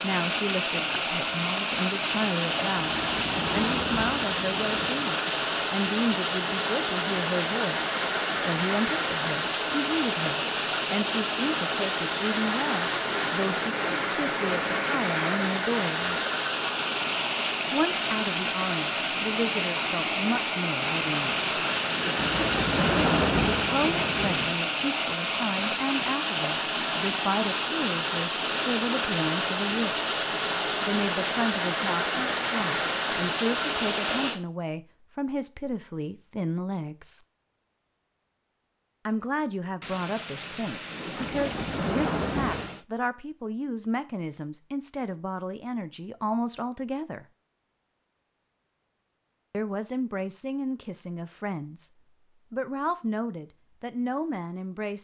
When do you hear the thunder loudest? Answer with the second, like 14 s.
23 s.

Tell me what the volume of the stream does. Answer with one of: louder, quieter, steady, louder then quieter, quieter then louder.
steady.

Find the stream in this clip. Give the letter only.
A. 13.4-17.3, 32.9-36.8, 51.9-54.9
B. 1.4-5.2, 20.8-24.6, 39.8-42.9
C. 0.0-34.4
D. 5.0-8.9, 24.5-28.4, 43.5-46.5
C.